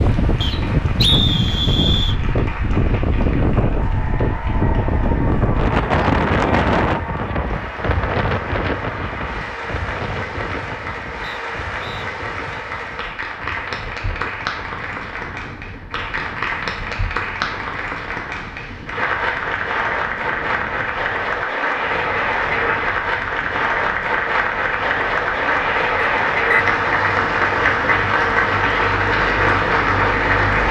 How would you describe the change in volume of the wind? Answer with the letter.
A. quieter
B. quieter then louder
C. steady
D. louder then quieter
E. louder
A.